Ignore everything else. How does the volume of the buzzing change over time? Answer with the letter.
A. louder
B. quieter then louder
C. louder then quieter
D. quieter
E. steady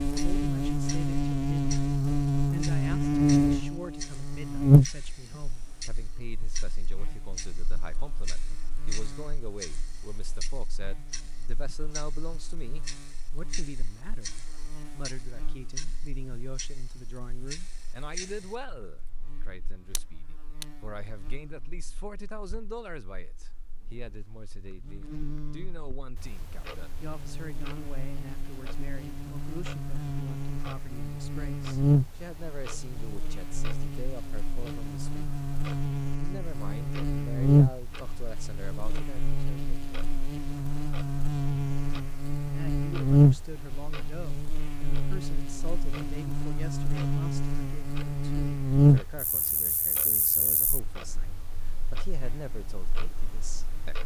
B.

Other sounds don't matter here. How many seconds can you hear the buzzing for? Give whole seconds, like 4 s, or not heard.
54 s.